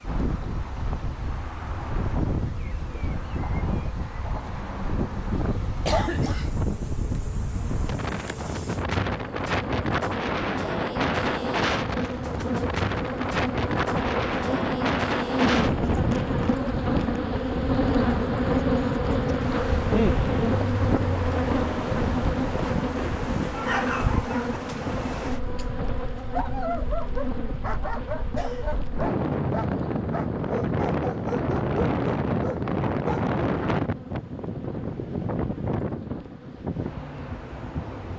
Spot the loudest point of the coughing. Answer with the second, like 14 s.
6 s.